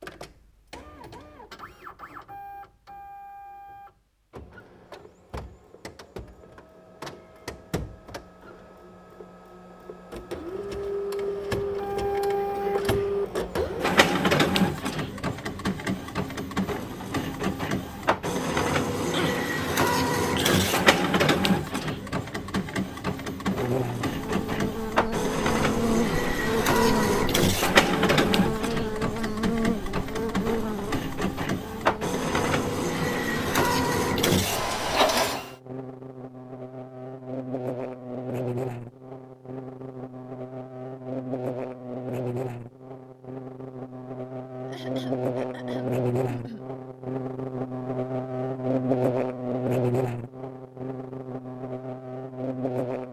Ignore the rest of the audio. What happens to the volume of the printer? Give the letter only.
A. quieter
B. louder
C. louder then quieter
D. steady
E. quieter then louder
B.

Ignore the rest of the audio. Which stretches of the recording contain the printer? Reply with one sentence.
The printer can be heard from 0.0 to 35.5 s.